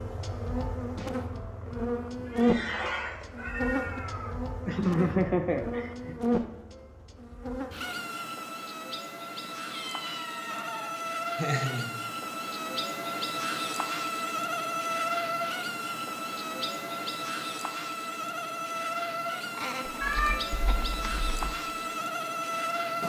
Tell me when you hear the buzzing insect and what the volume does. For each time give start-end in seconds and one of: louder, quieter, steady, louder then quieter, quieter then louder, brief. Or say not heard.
0.0-23.0 steady.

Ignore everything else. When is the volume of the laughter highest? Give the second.
5 s.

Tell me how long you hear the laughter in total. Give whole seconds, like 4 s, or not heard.
4 s.